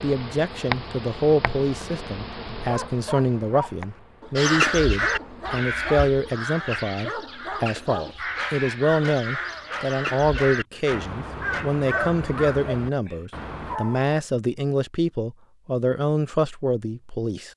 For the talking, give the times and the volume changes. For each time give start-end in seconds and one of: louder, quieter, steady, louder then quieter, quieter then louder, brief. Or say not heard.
0.0-17.5 steady.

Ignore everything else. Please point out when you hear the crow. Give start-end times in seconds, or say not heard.
4.3-13.8.